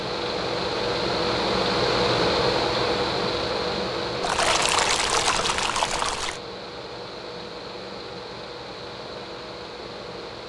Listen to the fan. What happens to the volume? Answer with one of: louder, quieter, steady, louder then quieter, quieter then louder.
quieter.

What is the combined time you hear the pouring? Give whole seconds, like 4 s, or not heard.
2 s.